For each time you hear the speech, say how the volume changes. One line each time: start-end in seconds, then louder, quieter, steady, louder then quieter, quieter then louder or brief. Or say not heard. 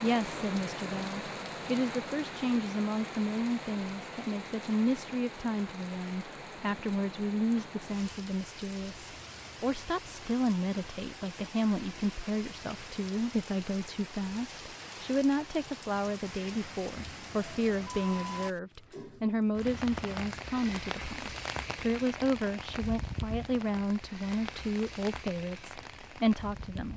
0.0-26.9 steady.